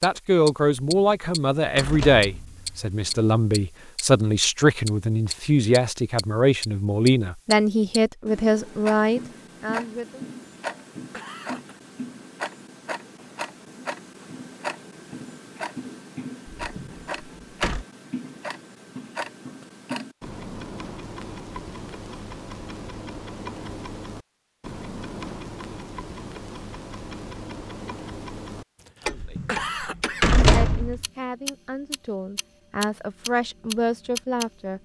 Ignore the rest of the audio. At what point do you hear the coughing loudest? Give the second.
30 s.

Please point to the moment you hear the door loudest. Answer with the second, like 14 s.
30 s.